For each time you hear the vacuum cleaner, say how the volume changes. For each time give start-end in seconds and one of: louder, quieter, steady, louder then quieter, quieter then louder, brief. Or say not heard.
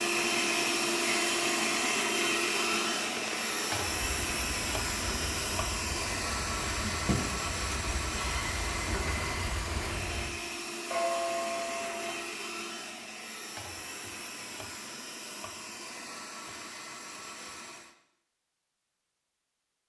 0.0-17.9 quieter.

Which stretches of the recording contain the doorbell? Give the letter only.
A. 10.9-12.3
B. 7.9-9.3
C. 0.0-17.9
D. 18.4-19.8
A.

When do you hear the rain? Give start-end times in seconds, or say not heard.
0.0-10.4.